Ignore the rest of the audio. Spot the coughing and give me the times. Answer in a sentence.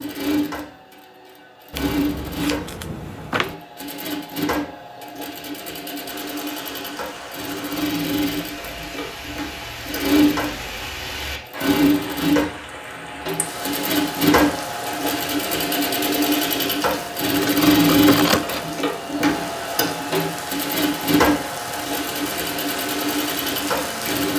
You can't hear the coughing here.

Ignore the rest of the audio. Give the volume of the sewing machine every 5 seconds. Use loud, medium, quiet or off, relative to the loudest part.
medium, medium, loud, loud, loud.